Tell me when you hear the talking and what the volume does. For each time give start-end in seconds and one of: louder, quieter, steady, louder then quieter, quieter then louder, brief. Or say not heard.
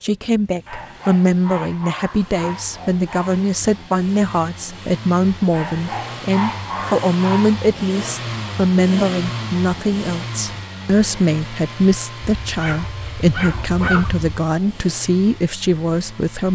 0.0-16.4 steady.